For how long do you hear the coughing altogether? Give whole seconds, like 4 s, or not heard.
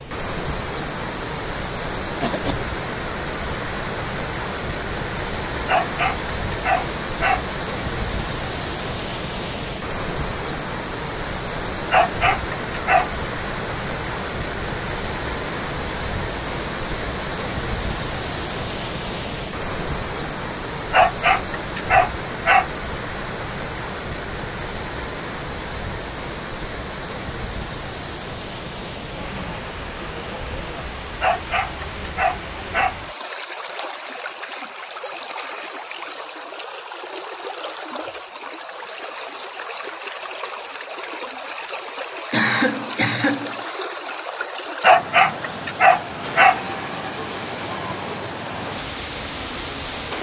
2 s.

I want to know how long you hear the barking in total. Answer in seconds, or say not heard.
8 s.